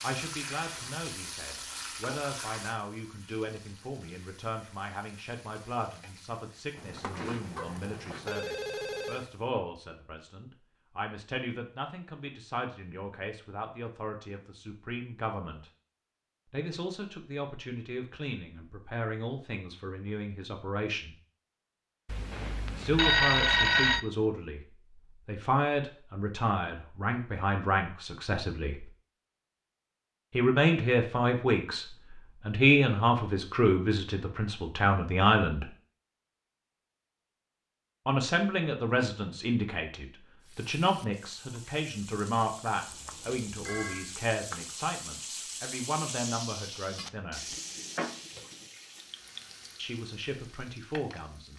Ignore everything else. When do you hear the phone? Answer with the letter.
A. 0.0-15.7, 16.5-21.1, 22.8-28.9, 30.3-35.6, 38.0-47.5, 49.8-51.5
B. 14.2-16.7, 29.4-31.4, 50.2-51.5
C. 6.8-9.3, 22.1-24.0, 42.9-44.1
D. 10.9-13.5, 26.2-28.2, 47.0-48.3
C.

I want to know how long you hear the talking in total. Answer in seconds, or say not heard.
43 s.